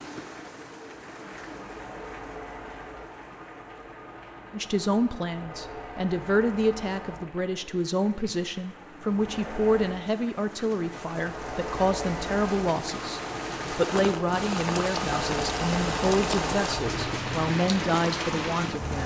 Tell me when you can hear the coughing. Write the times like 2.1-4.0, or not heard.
16.8-17.6.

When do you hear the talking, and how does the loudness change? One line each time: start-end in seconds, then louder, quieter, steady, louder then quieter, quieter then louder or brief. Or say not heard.
4.5-19.0 steady.